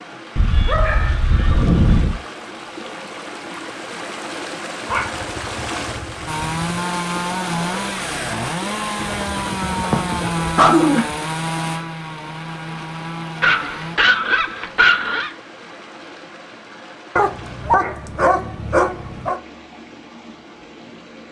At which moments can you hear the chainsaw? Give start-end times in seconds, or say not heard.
6.2-14.0.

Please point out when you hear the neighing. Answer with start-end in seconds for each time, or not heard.
not heard.